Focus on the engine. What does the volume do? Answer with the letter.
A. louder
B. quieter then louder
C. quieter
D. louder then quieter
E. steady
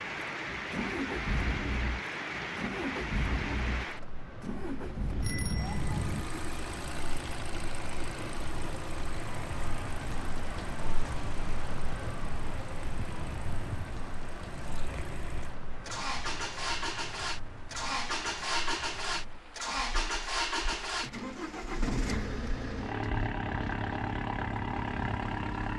B.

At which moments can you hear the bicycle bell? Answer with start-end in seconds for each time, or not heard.
5.2-6.2.